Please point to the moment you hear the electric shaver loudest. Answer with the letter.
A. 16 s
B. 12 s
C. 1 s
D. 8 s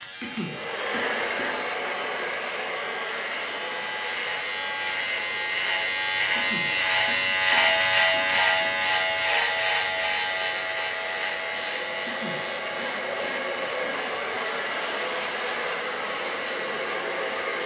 D.